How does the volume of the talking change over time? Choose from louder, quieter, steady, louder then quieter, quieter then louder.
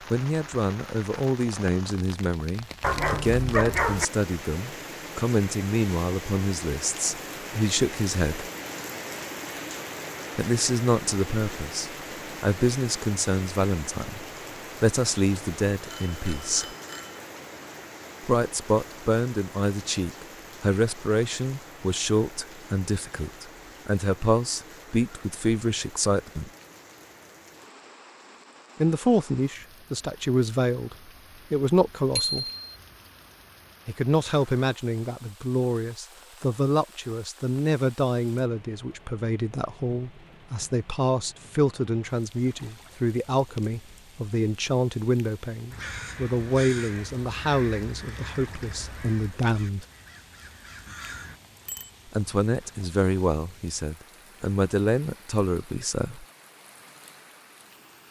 steady.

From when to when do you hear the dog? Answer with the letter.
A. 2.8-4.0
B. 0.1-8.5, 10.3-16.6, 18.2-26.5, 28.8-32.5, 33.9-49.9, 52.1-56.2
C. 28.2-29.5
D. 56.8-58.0
A.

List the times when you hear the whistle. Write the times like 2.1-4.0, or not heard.
not heard.